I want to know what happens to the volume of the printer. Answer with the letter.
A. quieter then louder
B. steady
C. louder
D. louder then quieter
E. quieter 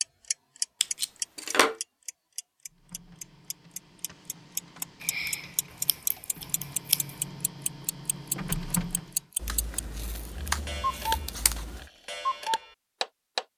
C.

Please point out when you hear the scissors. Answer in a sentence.
The scissors can be heard from 0.8 to 1.8 s, from 5.0 to 7.2 s and from 9.4 to 11.8 s.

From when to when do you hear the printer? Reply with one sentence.
You can hear the printer from 2.6 to 9.3 s.